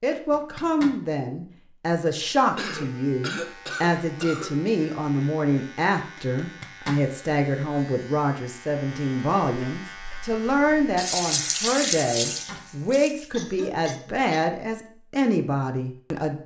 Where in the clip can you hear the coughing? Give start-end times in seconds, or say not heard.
2.5-4.5, 13.3-14.2.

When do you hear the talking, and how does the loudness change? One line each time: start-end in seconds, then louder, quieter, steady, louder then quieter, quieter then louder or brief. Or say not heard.
0.0-16.4 steady.